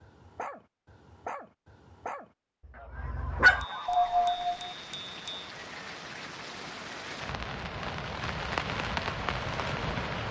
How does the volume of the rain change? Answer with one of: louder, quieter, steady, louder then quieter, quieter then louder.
louder.